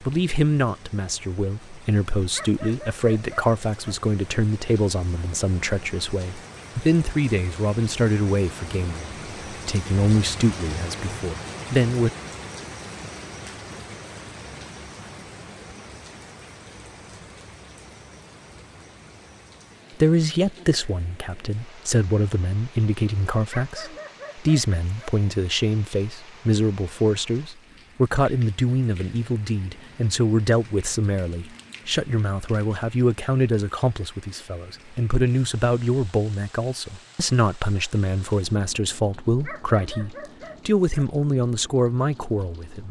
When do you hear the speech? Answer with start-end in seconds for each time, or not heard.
0.0-12.1, 20.0-42.8.